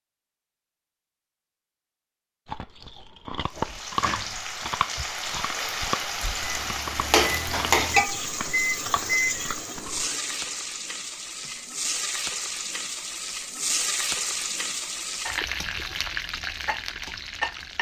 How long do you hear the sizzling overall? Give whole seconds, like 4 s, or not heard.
14 s.